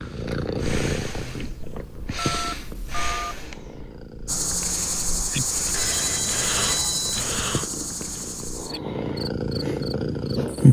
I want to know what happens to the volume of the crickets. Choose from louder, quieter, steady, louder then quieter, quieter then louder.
quieter.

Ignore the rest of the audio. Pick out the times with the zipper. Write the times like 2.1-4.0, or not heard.
not heard.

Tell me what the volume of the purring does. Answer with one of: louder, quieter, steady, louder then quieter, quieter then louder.
quieter then louder.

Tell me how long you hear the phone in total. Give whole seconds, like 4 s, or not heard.
3 s.